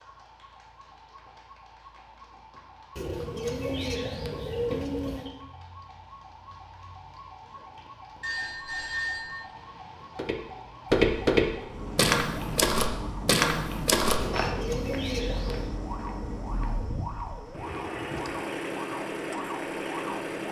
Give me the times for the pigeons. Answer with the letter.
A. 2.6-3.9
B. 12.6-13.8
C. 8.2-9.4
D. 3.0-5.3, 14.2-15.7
D.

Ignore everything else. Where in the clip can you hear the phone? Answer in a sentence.
The phone can be heard from 8.2 to 9.4 s.